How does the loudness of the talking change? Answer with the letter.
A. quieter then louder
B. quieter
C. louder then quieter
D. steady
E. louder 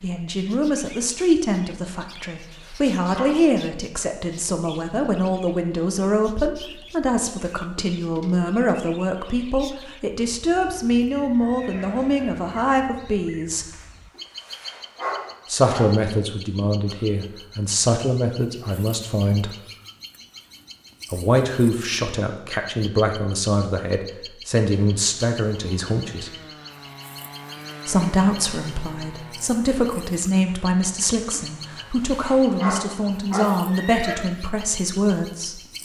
D.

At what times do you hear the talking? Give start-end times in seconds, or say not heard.
0.0-13.7, 15.4-19.5, 21.1-26.3, 27.9-35.6.